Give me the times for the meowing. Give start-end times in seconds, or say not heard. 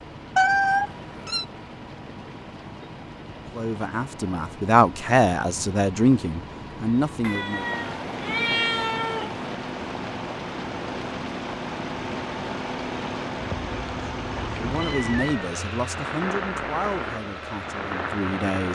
0.3-1.4, 7.2-9.4, 14.7-15.6.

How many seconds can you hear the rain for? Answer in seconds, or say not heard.
19 s.